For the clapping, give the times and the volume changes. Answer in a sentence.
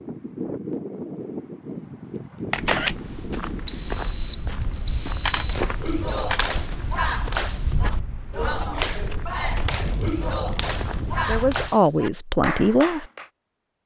You can hear the clapping from 5.5 to 13.2 s, at a steady volume.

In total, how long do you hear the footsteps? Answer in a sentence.
You can hear the footsteps for 9 seconds altogether.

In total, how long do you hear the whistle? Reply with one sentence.
You can hear the whistle for 3 seconds altogether.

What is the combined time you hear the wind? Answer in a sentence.
The wind can be heard for 12 seconds in total.